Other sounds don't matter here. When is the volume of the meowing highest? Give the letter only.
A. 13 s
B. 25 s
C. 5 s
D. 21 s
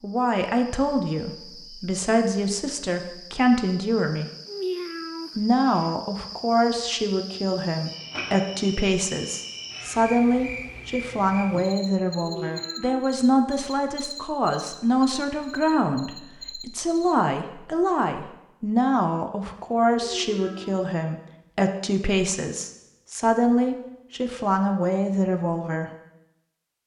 C.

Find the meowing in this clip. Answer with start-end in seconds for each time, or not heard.
4.5-5.8, 12.2-13.1, 20.2-20.8.